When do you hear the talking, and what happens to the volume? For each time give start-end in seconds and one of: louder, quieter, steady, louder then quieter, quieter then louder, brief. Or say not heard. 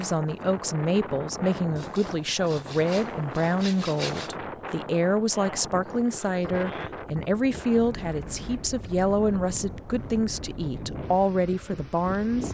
0.0-12.4 steady.